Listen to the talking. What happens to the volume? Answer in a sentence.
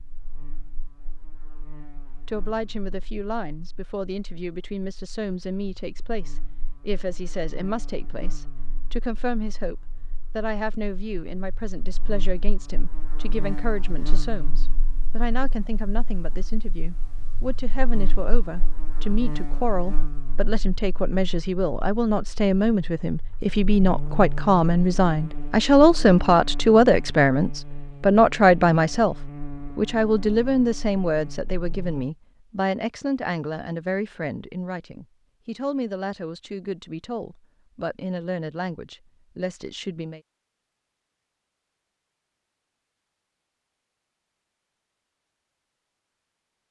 The loudness of the talking goes up, then down.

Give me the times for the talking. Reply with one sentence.
You can hear the talking from 2.2 to 29.1 s and from 29.8 to 40.2 s.